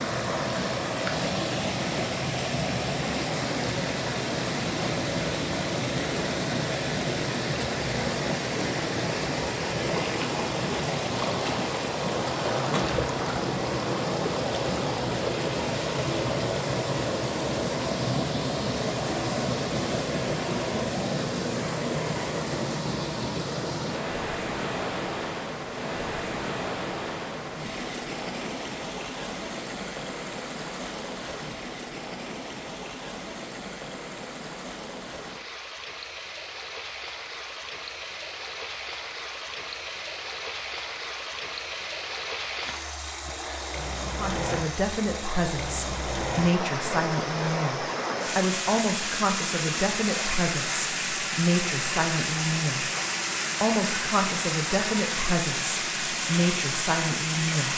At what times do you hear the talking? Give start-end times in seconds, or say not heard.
44.1-52.9, 53.6-57.7.